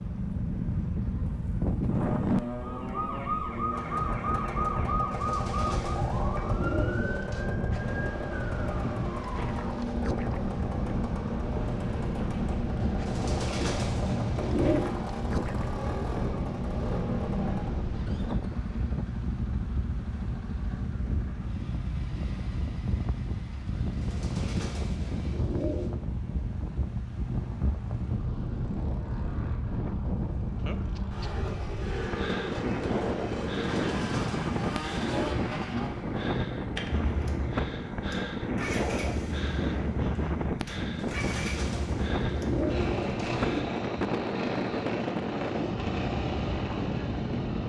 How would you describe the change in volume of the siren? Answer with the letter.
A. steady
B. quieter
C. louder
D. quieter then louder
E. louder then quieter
B.